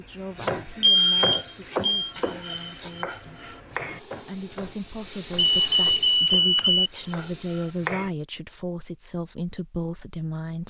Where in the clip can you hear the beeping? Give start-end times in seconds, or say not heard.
0.8-2.1, 5.6-6.9.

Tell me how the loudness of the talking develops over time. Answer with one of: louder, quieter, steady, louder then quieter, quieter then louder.
louder.